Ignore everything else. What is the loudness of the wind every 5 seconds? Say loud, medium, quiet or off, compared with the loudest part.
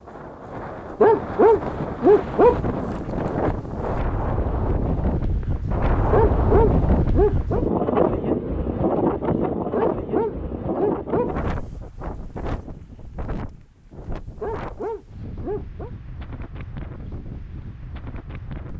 medium, loud, medium, quiet.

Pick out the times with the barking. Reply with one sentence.
You can hear the barking from 1.0 to 2.6 s, from 6.1 to 7.7 s, from 9.7 to 11.3 s and from 14.4 to 15.9 s.